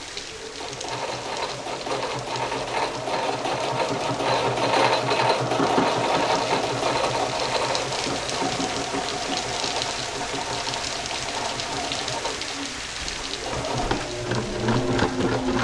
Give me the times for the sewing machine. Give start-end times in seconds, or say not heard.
0.0-15.5.